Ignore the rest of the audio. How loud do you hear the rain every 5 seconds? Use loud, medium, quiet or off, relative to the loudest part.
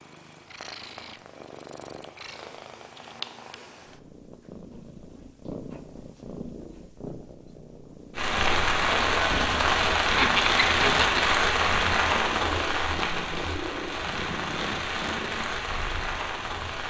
off, loud, loud, medium.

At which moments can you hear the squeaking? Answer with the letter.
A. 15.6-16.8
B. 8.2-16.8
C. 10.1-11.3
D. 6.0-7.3
C.